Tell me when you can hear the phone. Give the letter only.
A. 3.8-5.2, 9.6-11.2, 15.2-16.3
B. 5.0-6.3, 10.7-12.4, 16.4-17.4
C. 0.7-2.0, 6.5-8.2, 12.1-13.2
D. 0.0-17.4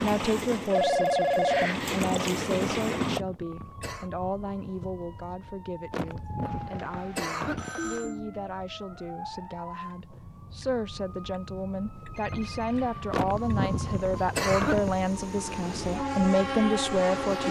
C.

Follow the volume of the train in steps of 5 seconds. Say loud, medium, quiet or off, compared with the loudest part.
loud, off, quiet, loud.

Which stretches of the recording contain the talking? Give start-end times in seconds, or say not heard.
0.0-17.4.